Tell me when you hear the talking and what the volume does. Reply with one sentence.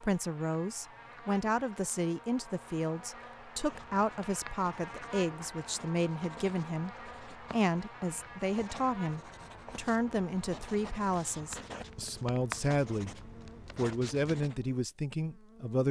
The talking can be heard from 0.0 to 13.2 s, at a steady volume; and briefly from 13.8 to 15.8 s.